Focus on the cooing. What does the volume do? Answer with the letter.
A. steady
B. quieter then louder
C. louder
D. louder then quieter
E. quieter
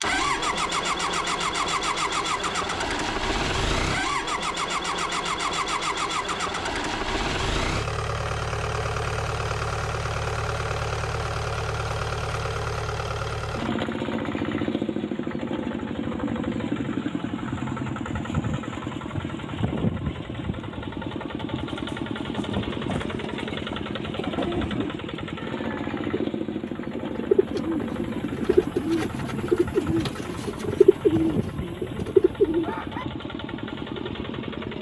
C.